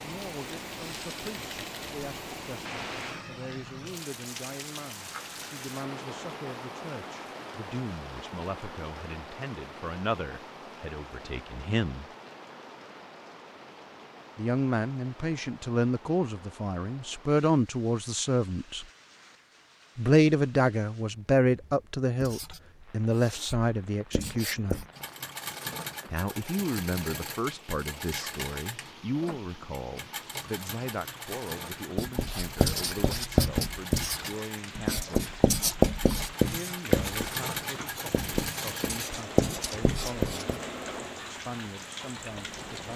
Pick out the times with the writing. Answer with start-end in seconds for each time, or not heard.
22.2-24.9, 31.9-40.6.